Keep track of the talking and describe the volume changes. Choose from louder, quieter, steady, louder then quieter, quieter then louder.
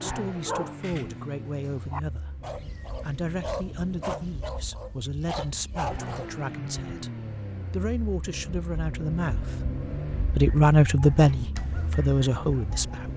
louder.